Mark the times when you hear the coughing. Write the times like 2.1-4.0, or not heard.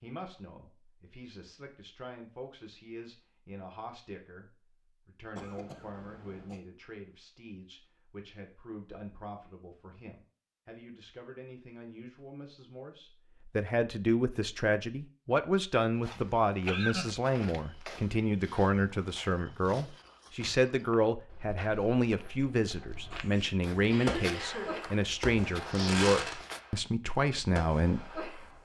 5.3-6.6, 16.6-17.3, 23.1-24.9.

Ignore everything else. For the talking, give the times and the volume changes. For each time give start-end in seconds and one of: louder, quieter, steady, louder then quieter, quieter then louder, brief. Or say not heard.
0.0-28.2 louder.